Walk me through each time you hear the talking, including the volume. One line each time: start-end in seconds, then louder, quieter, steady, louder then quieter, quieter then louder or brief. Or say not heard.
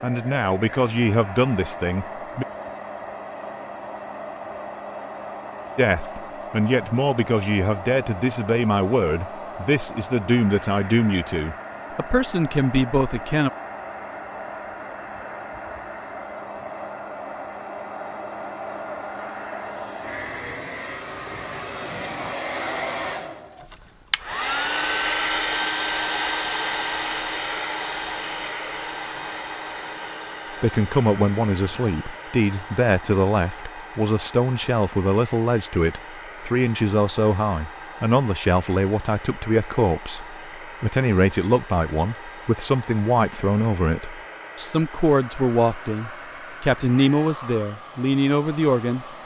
0.0-2.5 brief
5.8-13.5 steady
30.6-49.2 steady.